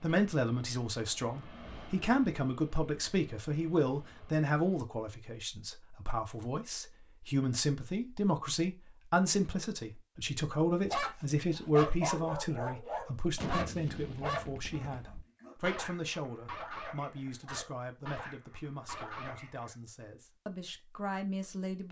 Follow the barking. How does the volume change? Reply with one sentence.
The loudness of the barking goes down.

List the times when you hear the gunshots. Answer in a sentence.
You can hear the gunshots from 13.3 to 15.2 s.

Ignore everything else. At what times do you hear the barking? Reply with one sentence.
You can hear the barking from 10.8 to 19.8 s.